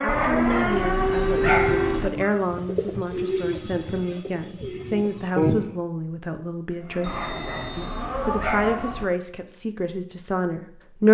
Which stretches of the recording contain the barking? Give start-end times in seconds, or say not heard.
0.1-2.1, 7.0-9.1.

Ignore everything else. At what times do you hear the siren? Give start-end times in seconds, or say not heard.
0.0-2.1, 6.8-9.1.